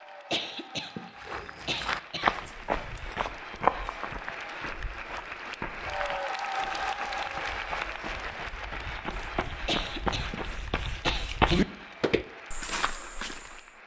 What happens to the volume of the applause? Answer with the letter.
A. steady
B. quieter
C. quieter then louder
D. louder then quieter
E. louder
D.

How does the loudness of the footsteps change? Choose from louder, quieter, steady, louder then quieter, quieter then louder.
quieter then louder.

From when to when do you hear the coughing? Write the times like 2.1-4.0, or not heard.
0.3-2.3, 6.7-7.3, 9.7-11.7.